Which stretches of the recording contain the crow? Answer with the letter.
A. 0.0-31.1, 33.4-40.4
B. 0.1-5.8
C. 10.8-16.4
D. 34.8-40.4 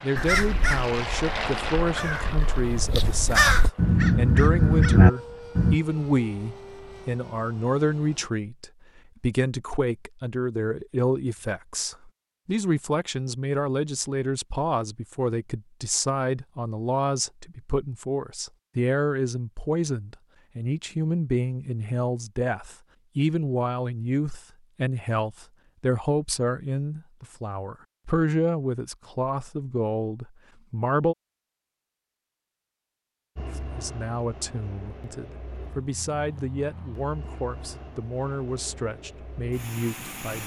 B.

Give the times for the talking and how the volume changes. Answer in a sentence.
The talking can be heard from 0.0 to 31.1 s, at a steady volume; and from 33.4 to 40.4 s, at a steady volume.